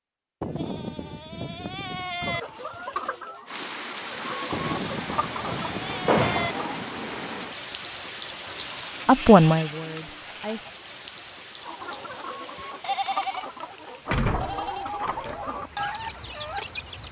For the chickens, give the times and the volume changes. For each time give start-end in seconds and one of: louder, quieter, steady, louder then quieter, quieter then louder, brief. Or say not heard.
2.2-6.8 quieter then louder
11.6-17.0 louder.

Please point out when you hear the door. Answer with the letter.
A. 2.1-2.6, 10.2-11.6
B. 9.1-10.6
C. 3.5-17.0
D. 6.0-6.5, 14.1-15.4
D.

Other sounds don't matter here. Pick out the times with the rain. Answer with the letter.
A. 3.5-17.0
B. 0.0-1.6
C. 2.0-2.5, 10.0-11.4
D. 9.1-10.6
A.